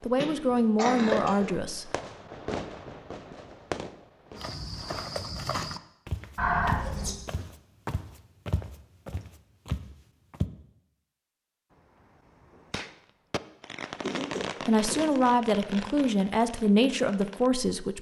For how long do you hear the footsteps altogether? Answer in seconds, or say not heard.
6 s.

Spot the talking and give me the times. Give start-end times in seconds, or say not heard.
0.0-1.9, 14.7-17.9.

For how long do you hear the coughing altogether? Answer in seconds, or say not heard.
3 s.